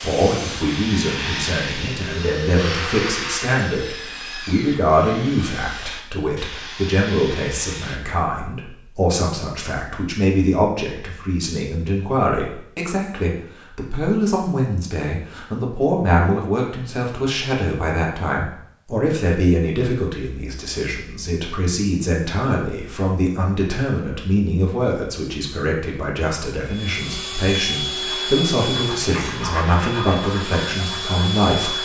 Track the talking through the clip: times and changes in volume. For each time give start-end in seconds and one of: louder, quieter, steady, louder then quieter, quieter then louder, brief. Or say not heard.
0.0-31.7 steady.